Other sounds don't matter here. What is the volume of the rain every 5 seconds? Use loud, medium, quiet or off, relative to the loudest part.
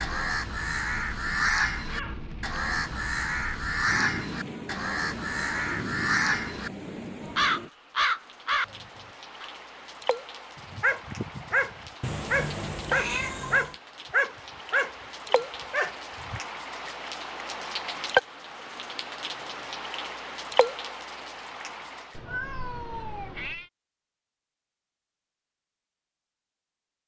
medium, medium, medium, loud, loud, off.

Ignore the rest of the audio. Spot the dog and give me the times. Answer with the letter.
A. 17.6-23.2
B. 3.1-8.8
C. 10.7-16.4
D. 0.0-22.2
C.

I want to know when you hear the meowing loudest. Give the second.
13 s.